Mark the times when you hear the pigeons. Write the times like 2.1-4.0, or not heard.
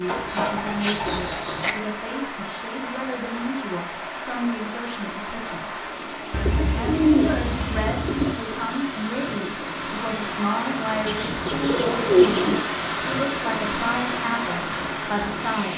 0.1-1.8, 6.3-8.3, 11.1-12.6.